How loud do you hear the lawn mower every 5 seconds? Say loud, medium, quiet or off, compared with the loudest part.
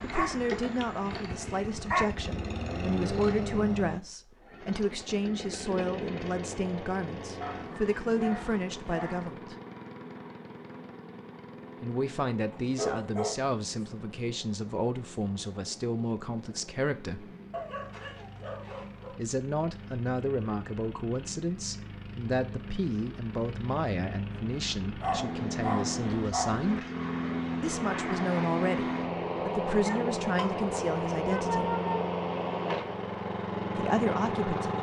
medium, medium, quiet, quiet, medium, loud, loud.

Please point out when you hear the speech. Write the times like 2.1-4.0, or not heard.
0.0-9.6, 11.8-17.4, 19.1-26.9, 27.6-31.8, 33.8-34.7.